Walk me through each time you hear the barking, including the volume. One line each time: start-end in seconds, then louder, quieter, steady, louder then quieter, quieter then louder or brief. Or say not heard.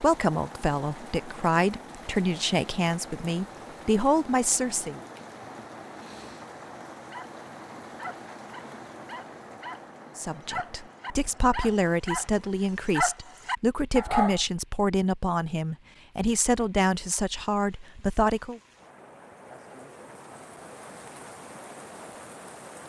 7.0-14.4 louder.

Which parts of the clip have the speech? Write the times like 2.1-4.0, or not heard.
0.0-5.0, 10.2-18.6.